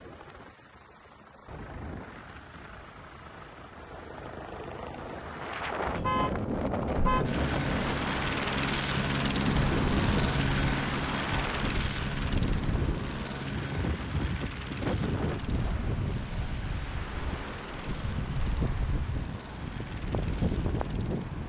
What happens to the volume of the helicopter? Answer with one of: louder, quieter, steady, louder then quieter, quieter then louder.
louder then quieter.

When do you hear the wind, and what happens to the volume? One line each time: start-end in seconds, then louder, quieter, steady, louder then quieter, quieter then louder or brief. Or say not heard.
5.3-21.4 steady.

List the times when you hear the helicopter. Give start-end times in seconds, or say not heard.
0.0-21.4.